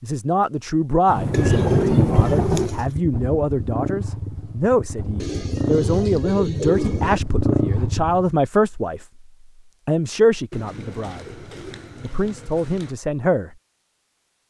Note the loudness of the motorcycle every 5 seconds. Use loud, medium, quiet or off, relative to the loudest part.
medium, loud, off.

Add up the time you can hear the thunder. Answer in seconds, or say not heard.
2 s.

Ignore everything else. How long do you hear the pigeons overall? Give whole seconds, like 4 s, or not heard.
6 s.